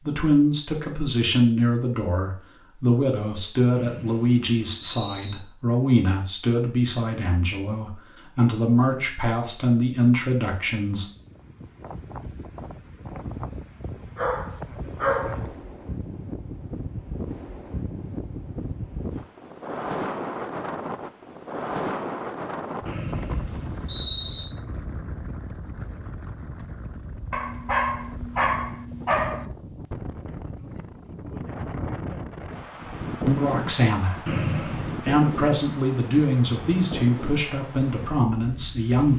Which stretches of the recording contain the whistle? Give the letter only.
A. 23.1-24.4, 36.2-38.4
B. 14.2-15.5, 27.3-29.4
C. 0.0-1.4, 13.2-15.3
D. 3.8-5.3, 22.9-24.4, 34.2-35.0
D.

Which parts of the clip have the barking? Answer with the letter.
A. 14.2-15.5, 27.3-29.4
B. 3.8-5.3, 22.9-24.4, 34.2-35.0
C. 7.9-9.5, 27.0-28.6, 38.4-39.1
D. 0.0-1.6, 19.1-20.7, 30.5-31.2
A.